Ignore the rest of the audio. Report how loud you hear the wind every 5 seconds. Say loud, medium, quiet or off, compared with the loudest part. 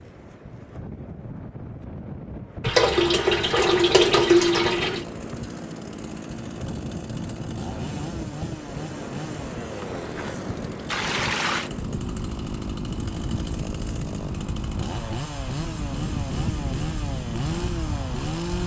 medium, loud, loud, loud.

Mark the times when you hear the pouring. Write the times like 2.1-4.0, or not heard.
2.6-5.0, 10.9-11.7.